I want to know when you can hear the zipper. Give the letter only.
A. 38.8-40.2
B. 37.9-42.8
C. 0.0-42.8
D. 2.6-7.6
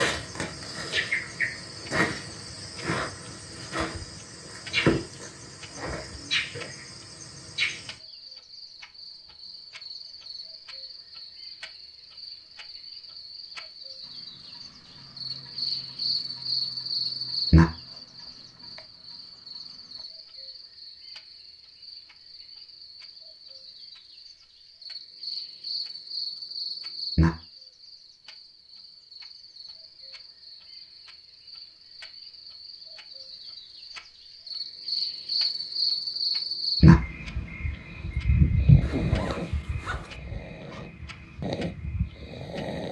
A.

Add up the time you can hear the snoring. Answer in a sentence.
The snoring can be heard for 5 seconds in total.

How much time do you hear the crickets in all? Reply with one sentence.
The crickets can be heard for 43 seconds in total.